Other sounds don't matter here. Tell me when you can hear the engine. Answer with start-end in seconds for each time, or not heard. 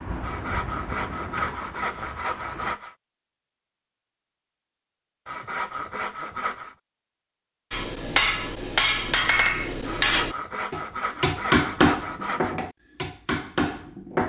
0.0-2.8.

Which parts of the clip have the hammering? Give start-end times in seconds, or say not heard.
7.7-14.2.